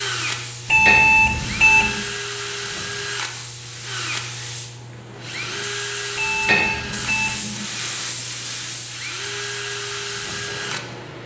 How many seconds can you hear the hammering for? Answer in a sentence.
You can hear the hammering for 2 seconds altogether.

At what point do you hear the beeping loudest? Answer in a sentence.
The loudest moment of the beeping is at 1 second.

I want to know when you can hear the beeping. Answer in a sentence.
You can hear the beeping from 0.7 to 1.9 s and from 6.2 to 7.4 s.